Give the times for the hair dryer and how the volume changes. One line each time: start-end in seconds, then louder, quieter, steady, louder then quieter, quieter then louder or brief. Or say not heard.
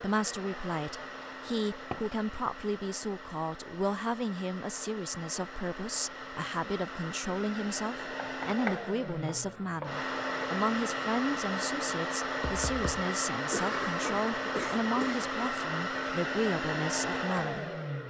0.0-18.0 louder.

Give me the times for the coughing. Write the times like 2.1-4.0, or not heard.
13.5-15.3.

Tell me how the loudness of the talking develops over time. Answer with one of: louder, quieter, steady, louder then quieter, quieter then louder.
steady.